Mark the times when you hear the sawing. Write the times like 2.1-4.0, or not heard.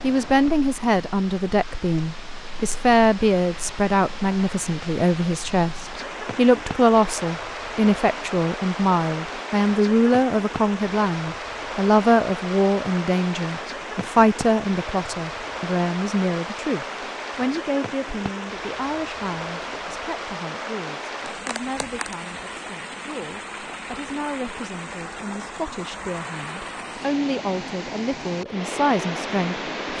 not heard.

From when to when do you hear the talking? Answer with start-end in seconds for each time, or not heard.
0.0-29.9.